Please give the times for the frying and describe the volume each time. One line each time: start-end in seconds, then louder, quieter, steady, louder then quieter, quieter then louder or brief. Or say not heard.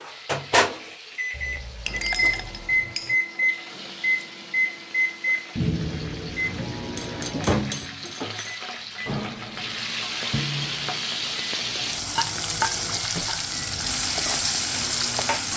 0.0-15.5 louder.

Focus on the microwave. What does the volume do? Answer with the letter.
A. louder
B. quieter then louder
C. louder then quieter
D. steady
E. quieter
E.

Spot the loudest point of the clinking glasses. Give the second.
2 s.